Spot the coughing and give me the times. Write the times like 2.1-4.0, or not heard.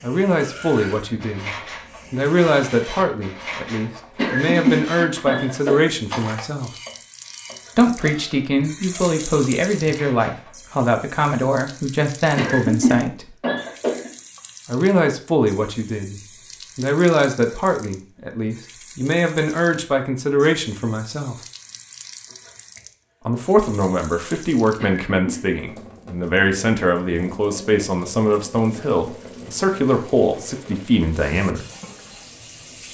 4.2-5.9, 12.3-14.1, 24.8-25.4.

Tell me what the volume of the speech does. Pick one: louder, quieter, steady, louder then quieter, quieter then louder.
steady.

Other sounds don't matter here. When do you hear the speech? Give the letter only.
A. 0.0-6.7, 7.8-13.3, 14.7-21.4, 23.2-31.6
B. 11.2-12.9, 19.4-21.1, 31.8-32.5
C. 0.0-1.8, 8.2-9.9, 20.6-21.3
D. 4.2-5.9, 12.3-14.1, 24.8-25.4
A.